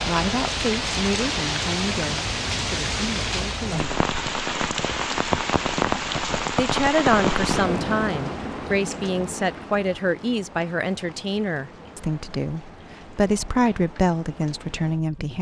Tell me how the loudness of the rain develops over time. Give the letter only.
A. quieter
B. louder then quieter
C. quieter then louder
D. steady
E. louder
A.